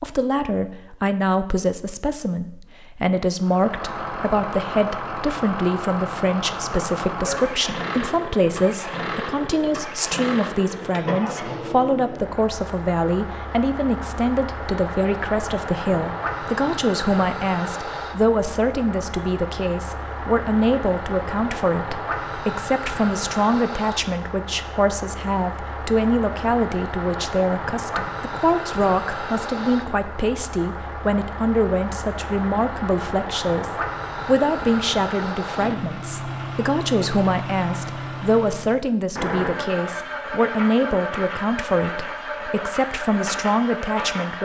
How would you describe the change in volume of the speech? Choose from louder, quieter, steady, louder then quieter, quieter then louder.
steady.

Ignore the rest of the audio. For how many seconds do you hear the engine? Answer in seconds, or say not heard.
41 s.